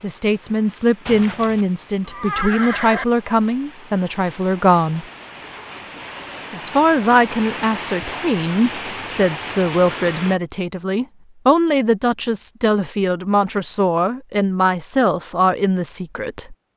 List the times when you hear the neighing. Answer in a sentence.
The neighing can be heard from 1.1 to 3.0 s.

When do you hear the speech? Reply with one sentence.
The speech can be heard from 0.0 to 5.0 s and from 6.5 to 16.6 s.